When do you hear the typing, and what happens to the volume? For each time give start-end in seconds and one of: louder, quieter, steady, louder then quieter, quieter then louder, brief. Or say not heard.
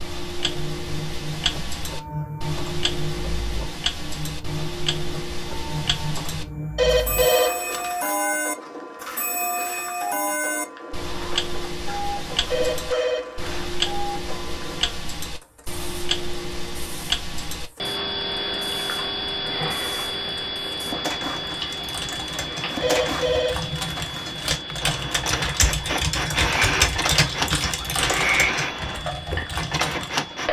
21.4-30.2 louder then quieter.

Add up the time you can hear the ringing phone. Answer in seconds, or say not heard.
3 s.